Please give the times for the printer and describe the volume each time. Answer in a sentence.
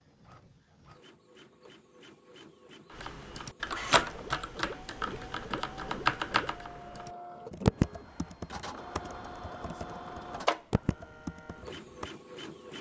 The printer can be heard from 0.0 to 12.7 s, getting louder.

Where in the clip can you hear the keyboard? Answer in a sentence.
You can hear the keyboard from 3.0 to 12.1 s.